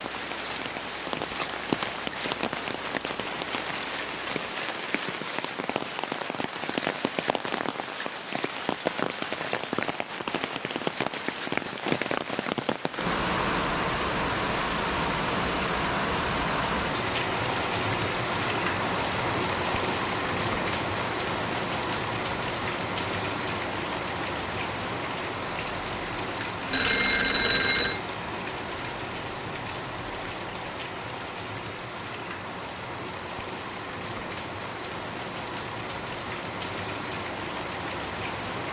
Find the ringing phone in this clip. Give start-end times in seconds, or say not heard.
26.7-28.0.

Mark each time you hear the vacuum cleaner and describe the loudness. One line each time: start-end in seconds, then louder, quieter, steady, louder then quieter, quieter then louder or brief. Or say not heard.
not heard.